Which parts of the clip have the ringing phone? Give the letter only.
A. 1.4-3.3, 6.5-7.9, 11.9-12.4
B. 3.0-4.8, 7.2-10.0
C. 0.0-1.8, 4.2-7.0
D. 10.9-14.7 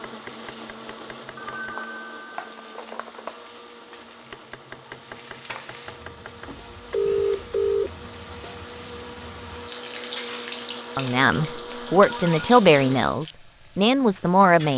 A.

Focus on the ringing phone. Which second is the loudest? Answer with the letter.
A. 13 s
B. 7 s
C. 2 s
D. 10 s
B.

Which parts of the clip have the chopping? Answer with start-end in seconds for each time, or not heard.
0.0-1.8, 4.2-7.0.